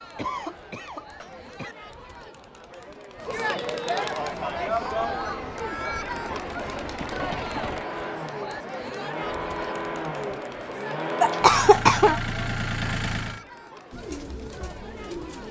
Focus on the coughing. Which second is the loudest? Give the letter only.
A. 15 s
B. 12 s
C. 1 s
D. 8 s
B.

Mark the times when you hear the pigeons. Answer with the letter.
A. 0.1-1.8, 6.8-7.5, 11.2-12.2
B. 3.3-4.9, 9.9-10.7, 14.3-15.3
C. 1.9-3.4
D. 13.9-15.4
D.